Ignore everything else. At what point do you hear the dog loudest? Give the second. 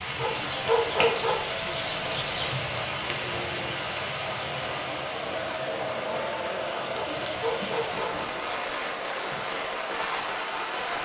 1 s.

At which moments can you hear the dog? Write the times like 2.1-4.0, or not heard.
0.1-2.6, 7.0-8.7.